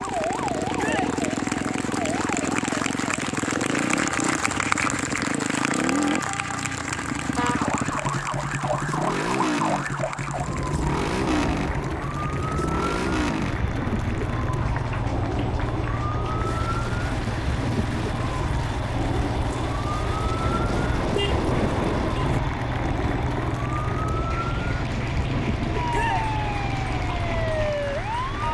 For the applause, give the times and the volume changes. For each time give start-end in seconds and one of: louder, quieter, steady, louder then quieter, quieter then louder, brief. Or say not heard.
0.0-28.4 quieter.